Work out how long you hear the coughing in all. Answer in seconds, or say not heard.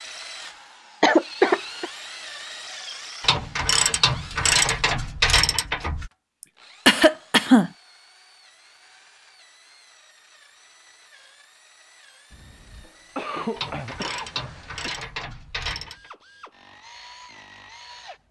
5 s.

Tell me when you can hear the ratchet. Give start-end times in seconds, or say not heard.
3.2-6.1, 13.6-16.1.